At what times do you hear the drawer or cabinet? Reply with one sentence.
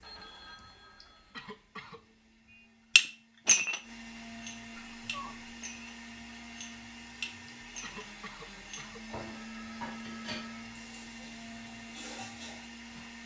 The drawer or cabinet can't be heard in this clip.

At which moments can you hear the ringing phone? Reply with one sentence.
The ringing phone can be heard from 0.0 to 1.4 s, from 4.8 to 5.5 s and from 9.3 to 10.8 s.